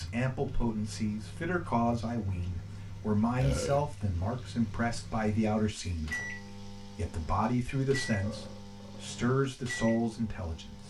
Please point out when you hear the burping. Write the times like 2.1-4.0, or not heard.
3.4-3.8, 8.2-9.1.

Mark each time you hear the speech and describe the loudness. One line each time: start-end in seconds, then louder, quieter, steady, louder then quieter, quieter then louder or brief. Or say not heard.
0.0-10.8 steady.